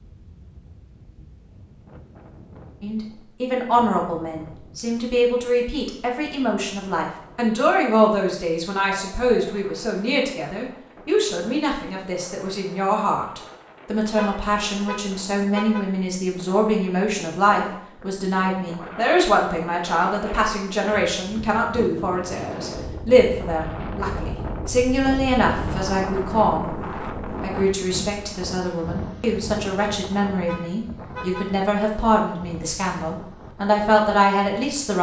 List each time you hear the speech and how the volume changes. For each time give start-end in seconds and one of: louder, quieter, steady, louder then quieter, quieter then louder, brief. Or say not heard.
2.8-34.9 steady.